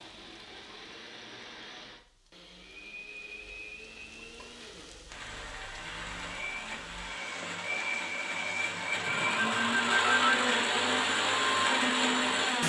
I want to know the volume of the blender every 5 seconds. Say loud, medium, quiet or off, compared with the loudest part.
quiet, medium, loud.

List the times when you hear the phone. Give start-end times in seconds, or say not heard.
9.1-10.6.